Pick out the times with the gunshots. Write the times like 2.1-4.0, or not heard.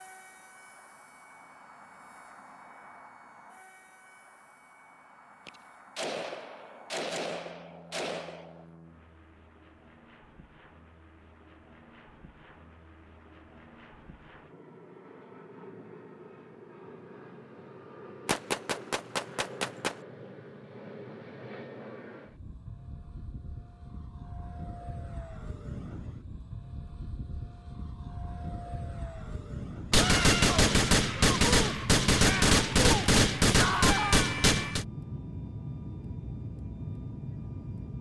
5.5-8.7, 18.2-20.0, 29.9-34.9.